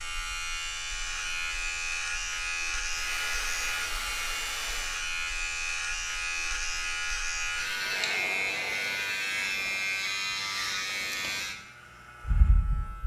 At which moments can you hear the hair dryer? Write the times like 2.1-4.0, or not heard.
2.9-5.0.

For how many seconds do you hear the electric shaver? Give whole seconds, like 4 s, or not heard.
13 s.